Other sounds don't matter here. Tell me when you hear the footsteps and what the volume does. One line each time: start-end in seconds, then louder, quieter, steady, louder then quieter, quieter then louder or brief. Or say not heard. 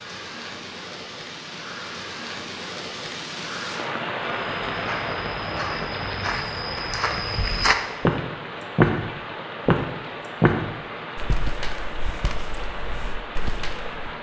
4.4-14.1 louder then quieter.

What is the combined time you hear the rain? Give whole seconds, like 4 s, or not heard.
14 s.